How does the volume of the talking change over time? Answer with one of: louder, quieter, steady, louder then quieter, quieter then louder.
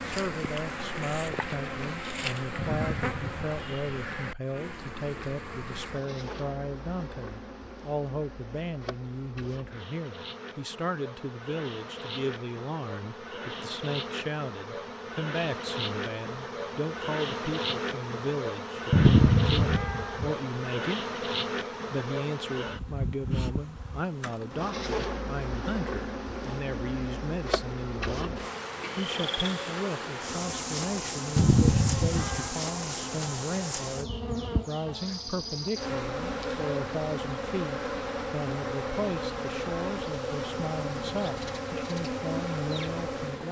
steady.